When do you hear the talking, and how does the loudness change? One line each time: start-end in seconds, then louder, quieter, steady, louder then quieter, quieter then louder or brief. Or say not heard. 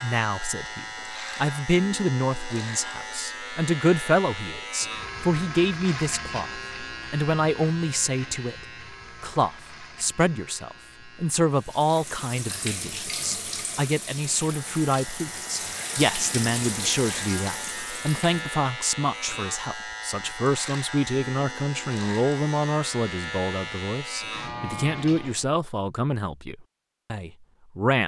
0.0-28.0 steady.